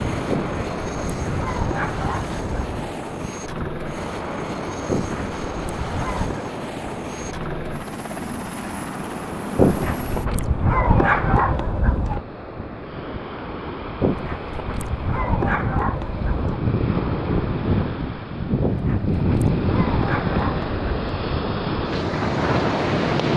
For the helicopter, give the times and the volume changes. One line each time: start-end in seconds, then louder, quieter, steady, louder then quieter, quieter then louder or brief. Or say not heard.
0.0-10.3 steady.